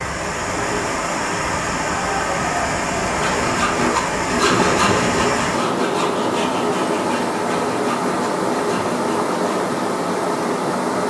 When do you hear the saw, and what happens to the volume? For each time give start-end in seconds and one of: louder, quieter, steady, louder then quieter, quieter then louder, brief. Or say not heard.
3.0-9.6 quieter.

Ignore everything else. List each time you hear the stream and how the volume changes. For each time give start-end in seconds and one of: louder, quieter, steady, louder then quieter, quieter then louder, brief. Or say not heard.
0.0-11.0 steady.